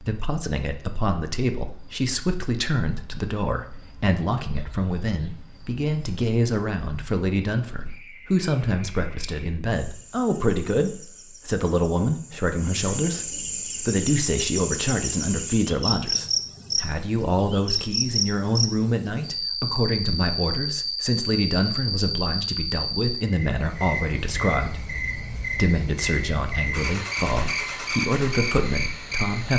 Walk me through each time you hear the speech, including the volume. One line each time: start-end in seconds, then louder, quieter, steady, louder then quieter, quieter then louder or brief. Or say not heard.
0.0-29.5 steady.